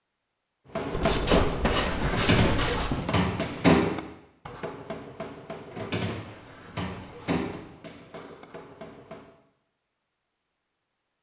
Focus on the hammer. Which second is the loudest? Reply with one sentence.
The volume of the hammer peaks at 1 second.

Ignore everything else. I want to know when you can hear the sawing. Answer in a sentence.
You can't hear the sawing here.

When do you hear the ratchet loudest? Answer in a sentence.
The loudest moment of the ratchet is at 1 second.